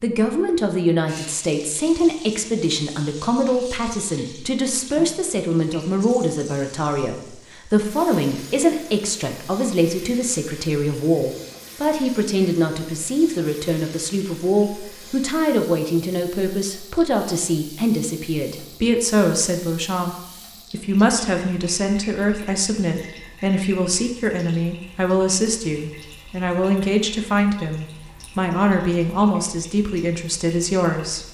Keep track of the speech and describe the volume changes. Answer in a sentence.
The volume of the speech stays about the same.